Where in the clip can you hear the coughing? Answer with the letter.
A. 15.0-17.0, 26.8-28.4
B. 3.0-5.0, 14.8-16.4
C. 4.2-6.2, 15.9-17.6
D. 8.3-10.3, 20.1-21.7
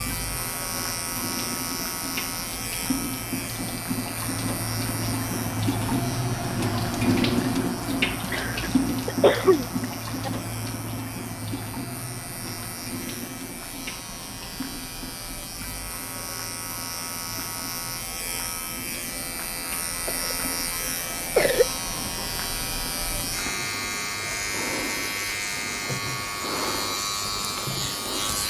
D.